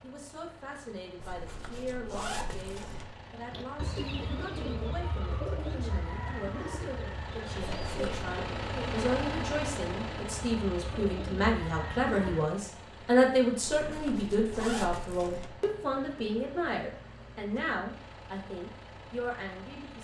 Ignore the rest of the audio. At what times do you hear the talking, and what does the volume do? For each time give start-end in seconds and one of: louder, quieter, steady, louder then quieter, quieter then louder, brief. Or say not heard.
0.0-20.0 louder then quieter.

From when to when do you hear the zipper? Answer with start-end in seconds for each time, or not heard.
1.1-3.0, 7.8-8.2, 13.6-15.5.